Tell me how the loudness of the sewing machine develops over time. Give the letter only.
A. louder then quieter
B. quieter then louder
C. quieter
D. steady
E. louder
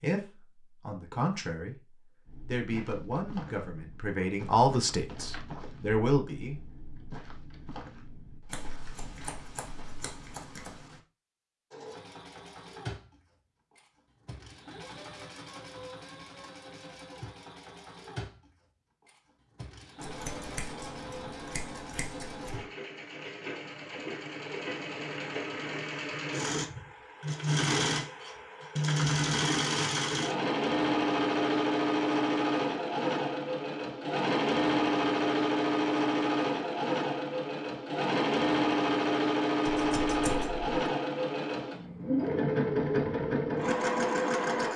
E.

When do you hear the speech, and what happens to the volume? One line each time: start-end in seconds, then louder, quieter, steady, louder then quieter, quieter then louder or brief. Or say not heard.
0.0-6.7 louder.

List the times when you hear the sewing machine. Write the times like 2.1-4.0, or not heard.
11.7-44.7.